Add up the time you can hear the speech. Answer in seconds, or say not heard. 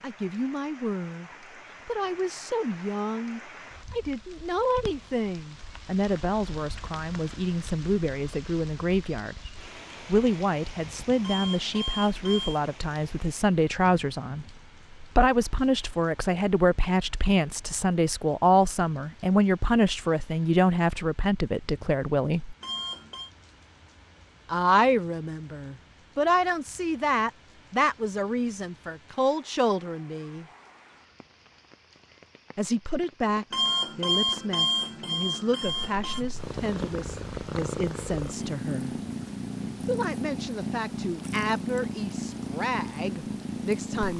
39 s.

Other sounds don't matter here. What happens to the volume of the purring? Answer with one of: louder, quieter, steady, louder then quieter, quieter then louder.
steady.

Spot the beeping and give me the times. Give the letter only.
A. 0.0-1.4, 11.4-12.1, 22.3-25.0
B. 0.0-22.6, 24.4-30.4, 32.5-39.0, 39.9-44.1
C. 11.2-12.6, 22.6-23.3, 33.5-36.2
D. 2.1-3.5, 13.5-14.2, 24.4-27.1
C.